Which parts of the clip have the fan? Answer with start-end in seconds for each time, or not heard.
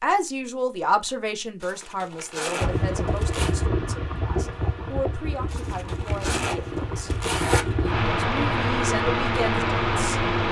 2.6-10.4.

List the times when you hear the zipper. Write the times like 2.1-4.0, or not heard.
1.6-3.5, 5.5-7.7.